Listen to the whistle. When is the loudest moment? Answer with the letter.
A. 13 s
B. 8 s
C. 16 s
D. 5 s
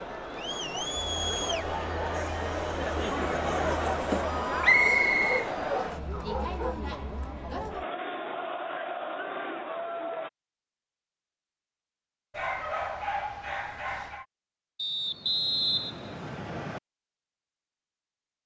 D.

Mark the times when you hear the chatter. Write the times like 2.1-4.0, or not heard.
0.0-10.3.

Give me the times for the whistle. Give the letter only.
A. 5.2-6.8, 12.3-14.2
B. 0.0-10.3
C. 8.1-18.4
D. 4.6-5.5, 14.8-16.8
D.